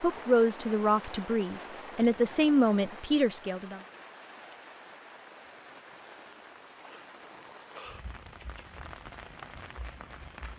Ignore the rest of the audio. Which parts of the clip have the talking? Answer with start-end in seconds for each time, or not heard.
0.0-3.8.